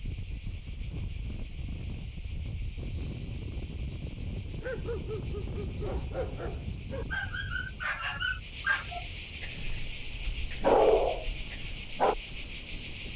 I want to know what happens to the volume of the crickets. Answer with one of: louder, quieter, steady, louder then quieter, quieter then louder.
louder.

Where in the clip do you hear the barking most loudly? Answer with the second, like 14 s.
11 s.